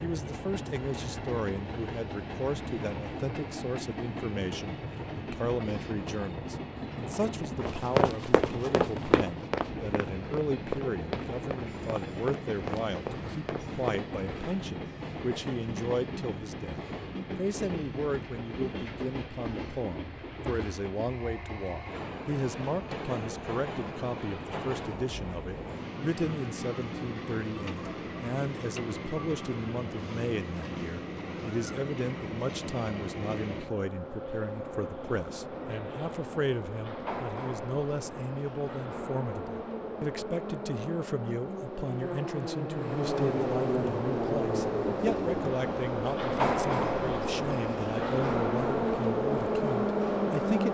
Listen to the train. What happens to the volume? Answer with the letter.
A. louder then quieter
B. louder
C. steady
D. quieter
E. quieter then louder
B.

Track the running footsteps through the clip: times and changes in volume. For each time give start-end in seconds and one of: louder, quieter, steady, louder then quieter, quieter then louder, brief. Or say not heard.
7.6-14.1 quieter.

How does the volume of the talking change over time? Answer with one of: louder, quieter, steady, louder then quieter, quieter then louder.
steady.